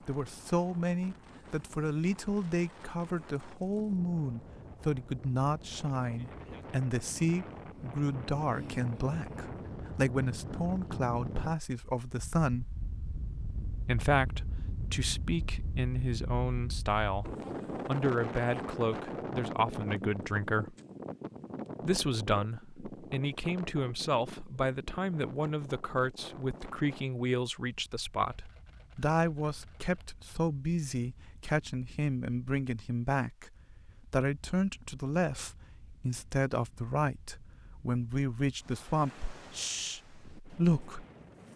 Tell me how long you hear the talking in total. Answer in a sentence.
The talking can be heard for 39 seconds in total.